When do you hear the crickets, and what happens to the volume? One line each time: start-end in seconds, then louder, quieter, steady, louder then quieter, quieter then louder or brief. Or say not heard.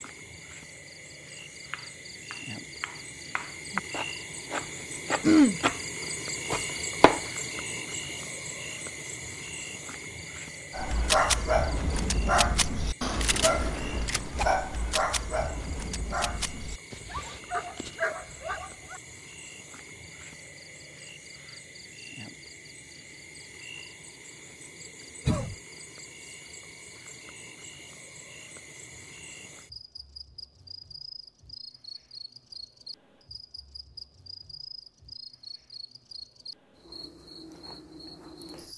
0.0-38.7 quieter.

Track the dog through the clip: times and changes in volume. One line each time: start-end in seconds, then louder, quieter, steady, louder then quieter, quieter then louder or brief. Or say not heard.
10.7-19.0 quieter.